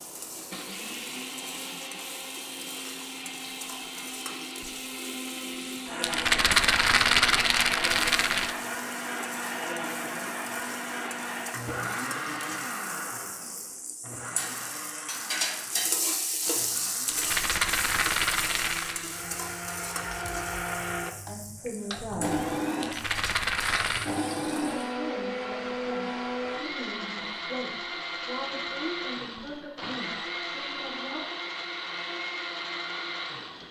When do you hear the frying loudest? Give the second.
16 s.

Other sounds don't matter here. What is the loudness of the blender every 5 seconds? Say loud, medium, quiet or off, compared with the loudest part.
medium, loud, loud, medium, loud, loud, loud.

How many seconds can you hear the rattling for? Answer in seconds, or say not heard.
6 s.